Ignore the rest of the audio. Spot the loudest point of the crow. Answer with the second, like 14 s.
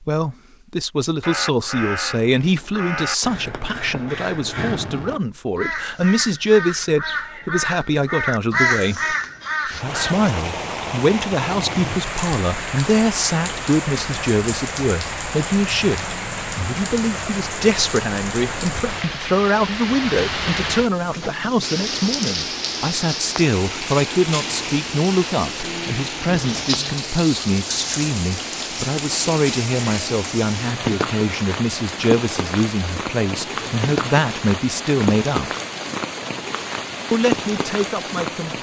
9 s.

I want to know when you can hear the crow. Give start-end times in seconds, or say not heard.
1.2-10.2.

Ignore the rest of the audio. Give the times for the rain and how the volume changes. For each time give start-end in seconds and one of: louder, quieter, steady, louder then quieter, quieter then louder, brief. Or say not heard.
9.7-38.5 steady.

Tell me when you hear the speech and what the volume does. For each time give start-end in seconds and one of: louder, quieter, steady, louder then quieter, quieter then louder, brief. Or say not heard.
0.0-35.5 steady
37.1-38.5 brief.